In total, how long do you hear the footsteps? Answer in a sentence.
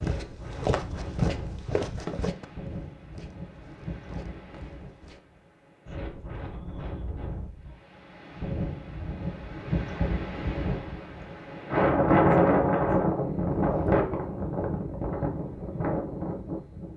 The footsteps can be heard for 5 seconds in total.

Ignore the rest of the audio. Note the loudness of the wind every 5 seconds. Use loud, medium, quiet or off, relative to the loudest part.
quiet, quiet, loud, medium.